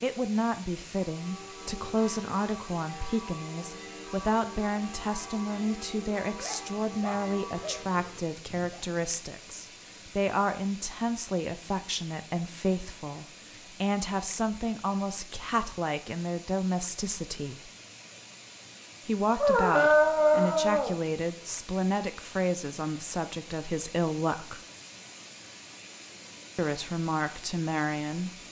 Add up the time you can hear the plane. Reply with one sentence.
The plane can't be heard in this clip.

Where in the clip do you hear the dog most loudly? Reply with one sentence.
The loudest moment of the dog is at 20 seconds.